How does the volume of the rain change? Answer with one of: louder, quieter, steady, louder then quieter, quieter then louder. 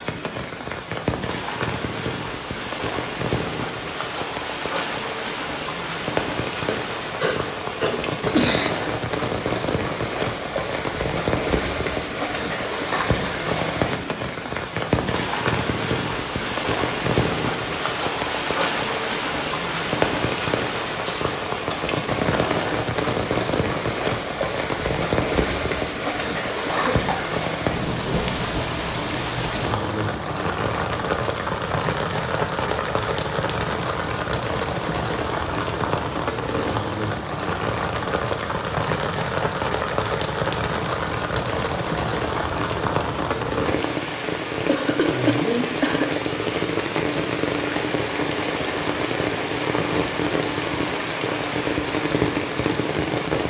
steady.